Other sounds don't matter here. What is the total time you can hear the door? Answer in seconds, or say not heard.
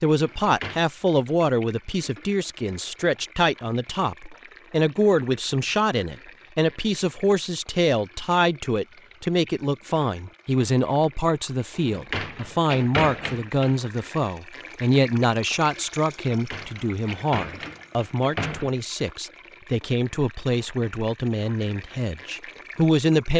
5 s.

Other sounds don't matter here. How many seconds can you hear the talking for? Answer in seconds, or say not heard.
23 s.